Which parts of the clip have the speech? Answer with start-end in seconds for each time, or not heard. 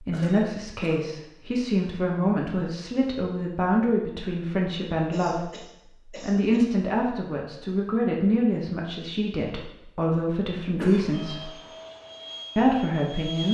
0.0-5.5, 6.2-11.5, 12.6-13.4.